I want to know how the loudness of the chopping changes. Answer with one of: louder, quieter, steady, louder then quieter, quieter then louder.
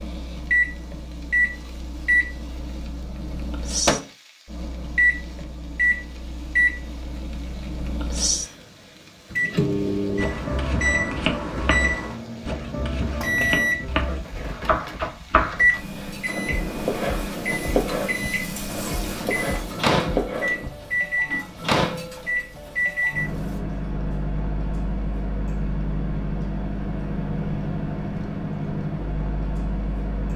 steady.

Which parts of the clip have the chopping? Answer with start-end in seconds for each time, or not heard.
9.5-20.7.